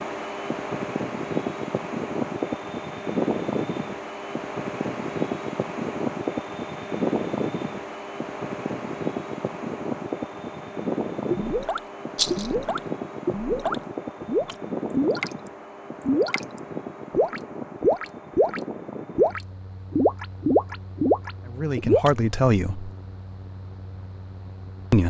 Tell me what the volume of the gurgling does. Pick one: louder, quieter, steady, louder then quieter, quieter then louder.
louder.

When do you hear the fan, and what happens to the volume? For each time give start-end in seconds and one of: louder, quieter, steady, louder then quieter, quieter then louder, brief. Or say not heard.
0.0-25.0 quieter.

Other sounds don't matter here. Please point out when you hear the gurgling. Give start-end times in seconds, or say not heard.
11.3-22.1.